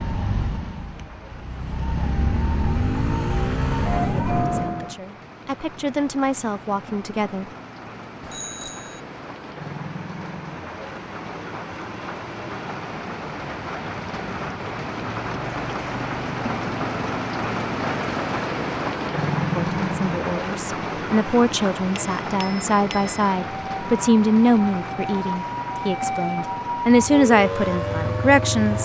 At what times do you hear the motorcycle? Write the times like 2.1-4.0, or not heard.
2.0-4.8, 26.8-28.8.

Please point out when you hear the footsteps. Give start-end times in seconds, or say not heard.
not heard.